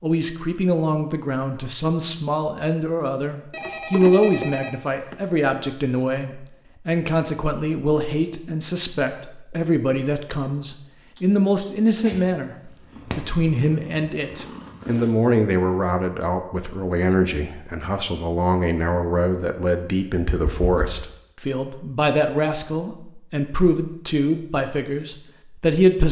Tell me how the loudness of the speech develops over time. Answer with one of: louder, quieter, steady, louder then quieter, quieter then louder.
steady.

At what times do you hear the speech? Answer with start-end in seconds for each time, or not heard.
0.0-26.0.